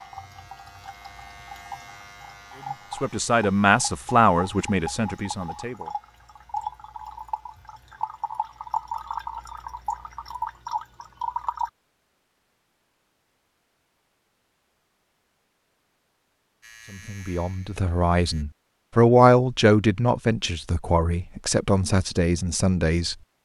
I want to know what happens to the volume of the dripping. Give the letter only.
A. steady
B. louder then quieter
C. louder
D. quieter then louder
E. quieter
C.